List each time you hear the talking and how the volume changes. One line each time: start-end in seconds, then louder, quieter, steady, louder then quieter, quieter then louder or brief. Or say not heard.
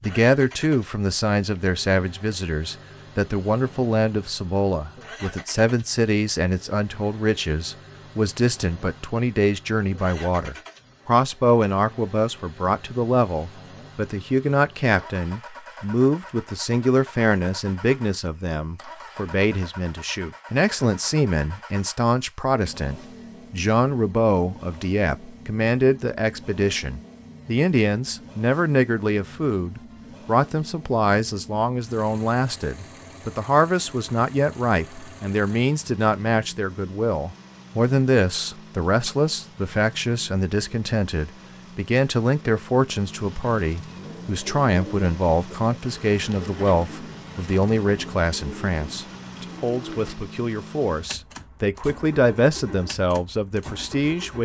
0.0-54.3 steady.